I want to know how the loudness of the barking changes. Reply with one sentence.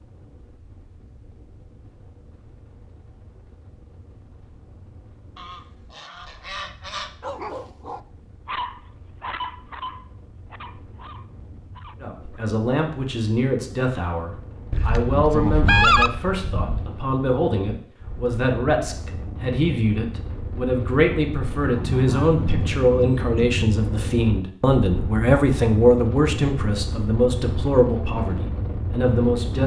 The volume of the barking goes up, then down.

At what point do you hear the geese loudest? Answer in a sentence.
The volume of the geese peaks at 16 seconds.